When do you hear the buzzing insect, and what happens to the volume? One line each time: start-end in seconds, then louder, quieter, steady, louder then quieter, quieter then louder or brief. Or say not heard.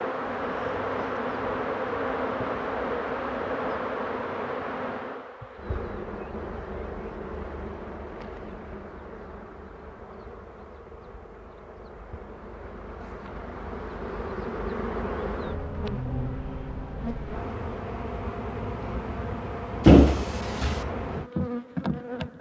0.0-22.3 quieter then louder.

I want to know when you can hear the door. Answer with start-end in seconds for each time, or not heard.
19.9-20.8.